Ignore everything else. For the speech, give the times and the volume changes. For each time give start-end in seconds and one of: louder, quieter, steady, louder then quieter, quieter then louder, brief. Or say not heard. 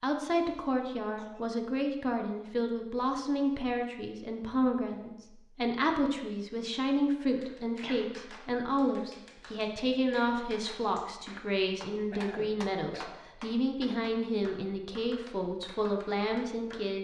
0.0-16.9 steady.